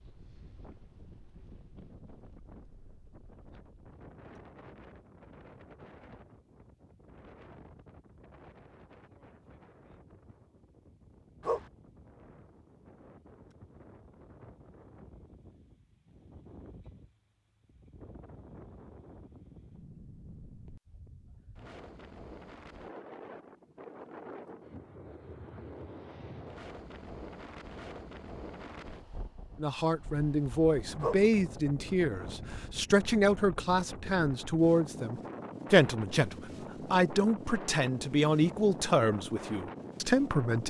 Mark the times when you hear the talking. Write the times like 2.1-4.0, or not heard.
29.6-40.6.